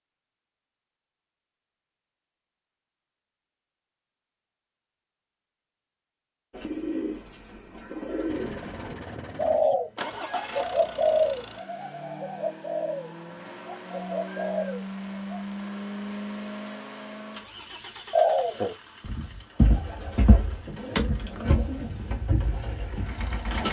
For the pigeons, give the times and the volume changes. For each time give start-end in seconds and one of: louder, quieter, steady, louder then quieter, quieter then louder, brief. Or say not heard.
6.5-15.4 louder then quieter
18.1-23.6 louder then quieter.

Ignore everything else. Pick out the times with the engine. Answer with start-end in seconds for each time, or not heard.
8.2-23.6.